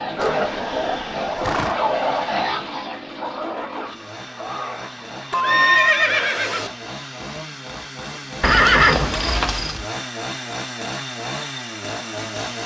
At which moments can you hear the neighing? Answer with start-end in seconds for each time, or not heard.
0.2-1.8, 5.3-6.7, 8.4-9.8.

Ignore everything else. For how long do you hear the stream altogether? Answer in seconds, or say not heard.
not heard.